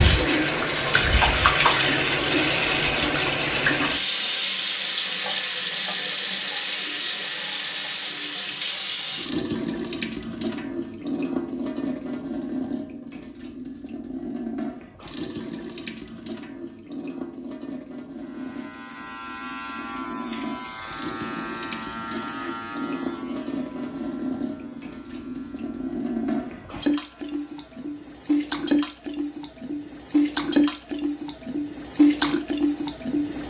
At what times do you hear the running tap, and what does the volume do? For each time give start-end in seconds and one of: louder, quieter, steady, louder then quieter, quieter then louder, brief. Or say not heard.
0.0-33.4 quieter then louder.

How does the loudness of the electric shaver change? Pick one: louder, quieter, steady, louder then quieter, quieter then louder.
quieter.